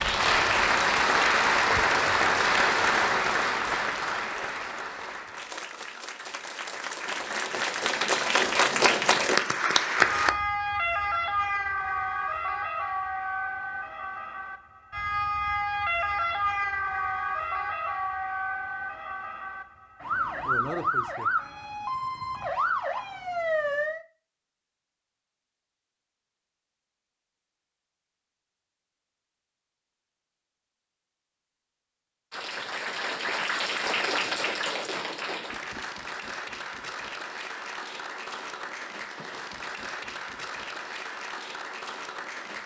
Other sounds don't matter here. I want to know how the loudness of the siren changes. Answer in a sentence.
The loudness of the siren stays about the same.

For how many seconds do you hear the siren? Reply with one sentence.
The siren can be heard for 14 seconds in total.